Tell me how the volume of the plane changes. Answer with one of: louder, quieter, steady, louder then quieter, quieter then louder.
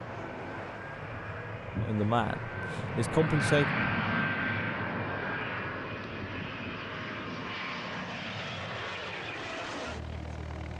louder then quieter.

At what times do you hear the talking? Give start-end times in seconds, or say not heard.
1.8-3.6.